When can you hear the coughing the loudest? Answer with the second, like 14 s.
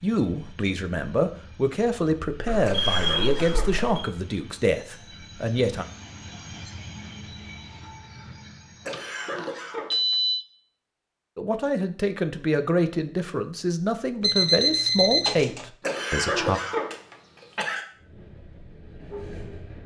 16 s.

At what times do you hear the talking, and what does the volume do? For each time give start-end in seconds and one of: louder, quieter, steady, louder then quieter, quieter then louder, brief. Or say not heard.
0.0-5.8 steady
11.3-16.6 steady.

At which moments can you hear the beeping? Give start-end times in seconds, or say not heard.
2.5-4.1, 8.9-10.4, 14.2-15.7.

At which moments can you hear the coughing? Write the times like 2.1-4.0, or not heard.
2.6-3.8, 8.8-10.2, 15.8-17.9.